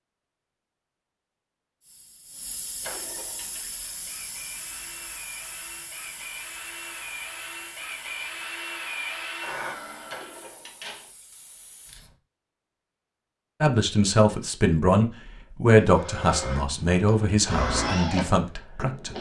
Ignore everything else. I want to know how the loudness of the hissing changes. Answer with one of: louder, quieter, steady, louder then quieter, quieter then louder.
quieter.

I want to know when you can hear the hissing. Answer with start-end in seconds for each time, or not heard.
1.8-12.2.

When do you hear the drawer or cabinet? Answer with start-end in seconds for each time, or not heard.
2.8-3.6, 10.1-11.1.